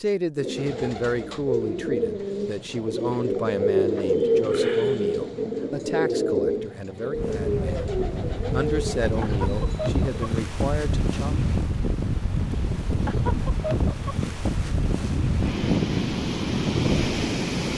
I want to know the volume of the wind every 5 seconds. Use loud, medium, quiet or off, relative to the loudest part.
off, medium, loud, loud.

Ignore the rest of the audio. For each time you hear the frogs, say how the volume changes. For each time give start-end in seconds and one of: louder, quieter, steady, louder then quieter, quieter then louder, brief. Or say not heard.
not heard.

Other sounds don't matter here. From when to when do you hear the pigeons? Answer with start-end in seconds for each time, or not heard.
0.3-10.4.